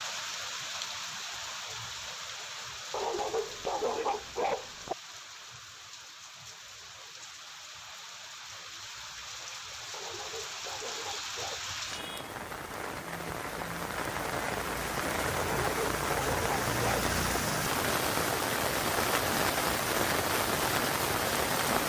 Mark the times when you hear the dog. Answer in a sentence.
You can hear the dog from 2.9 to 5.0 s, from 9.9 to 11.6 s and from 15.3 to 17.1 s.